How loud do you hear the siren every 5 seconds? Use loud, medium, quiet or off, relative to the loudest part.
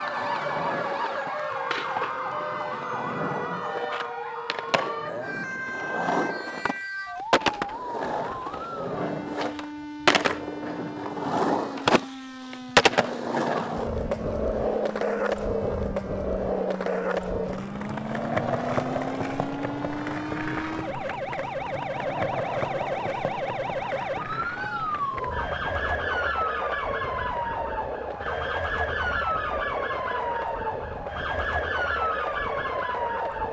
loud, medium, medium, medium, loud, loud, loud.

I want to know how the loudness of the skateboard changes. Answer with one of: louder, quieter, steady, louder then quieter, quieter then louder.
louder then quieter.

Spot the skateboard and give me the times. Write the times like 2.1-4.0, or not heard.
0.0-33.4.